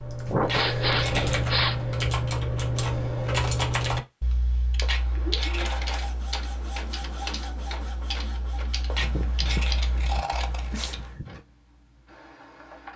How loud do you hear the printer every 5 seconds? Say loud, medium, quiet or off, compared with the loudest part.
off, loud, medium.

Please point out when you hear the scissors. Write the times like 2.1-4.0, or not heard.
0.4-1.4, 4.8-6.2, 8.9-11.1.